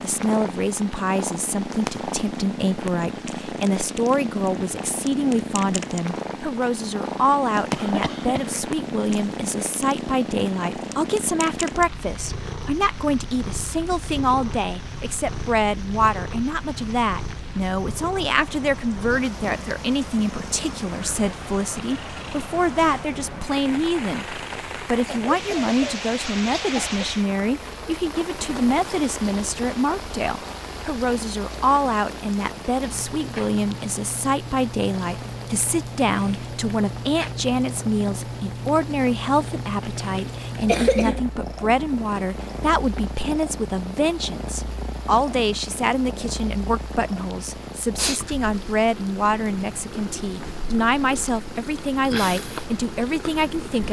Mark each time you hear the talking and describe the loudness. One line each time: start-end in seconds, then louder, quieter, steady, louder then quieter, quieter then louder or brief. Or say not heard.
0.0-53.8 steady.